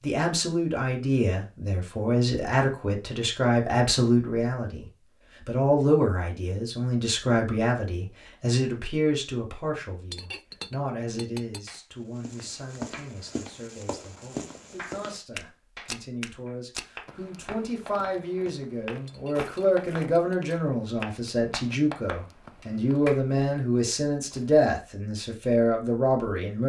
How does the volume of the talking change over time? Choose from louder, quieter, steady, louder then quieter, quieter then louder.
quieter then louder.